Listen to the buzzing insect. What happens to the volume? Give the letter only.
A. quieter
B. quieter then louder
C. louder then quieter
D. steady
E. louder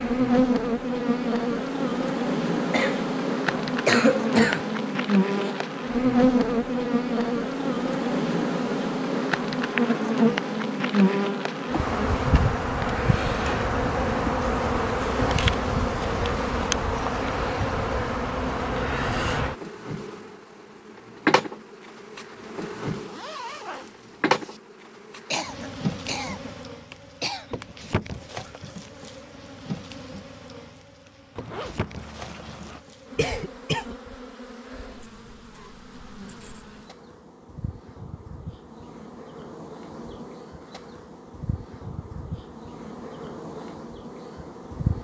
A.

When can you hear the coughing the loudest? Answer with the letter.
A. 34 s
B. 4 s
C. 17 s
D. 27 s
B.